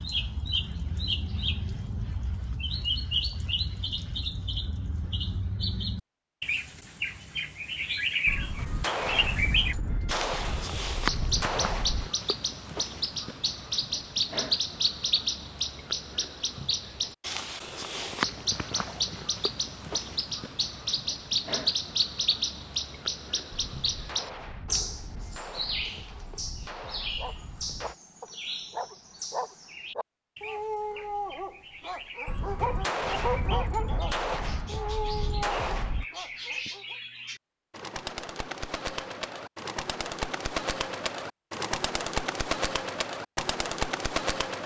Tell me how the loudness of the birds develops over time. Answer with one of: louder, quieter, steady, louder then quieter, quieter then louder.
quieter then louder.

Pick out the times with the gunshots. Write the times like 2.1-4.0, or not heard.
8.2-12.1, 23.5-27.9, 32.2-36.0.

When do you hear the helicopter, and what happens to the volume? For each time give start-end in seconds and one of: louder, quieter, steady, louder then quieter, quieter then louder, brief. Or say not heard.
not heard.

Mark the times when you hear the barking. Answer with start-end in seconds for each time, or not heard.
27.1-37.0.